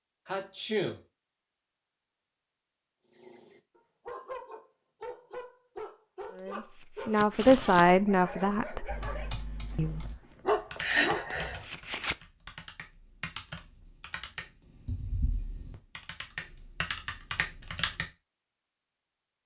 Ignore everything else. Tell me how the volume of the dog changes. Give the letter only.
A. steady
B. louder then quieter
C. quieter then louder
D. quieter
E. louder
E.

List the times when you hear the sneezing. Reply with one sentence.
You can hear the sneezing from 0.2 to 1.0 s and from 10.8 to 11.6 s.